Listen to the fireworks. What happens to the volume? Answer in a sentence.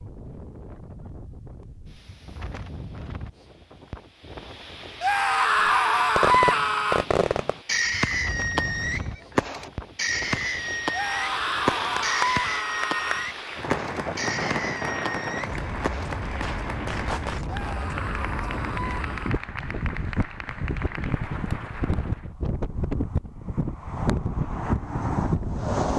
The loudness of the fireworks goes down.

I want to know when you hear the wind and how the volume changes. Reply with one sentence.
The wind can be heard from 0.0 to 25.9 s, getting louder.